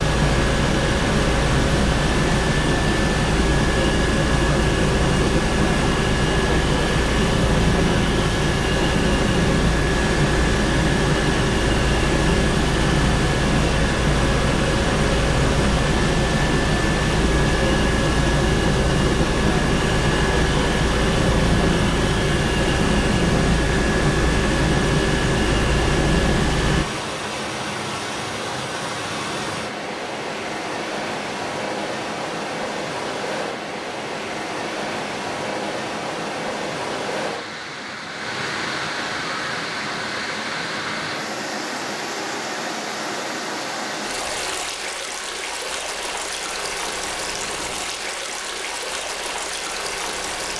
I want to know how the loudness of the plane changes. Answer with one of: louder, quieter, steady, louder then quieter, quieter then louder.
steady.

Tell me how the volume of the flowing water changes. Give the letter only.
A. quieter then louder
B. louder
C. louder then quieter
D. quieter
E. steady
E.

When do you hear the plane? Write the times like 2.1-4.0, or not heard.
0.0-26.9.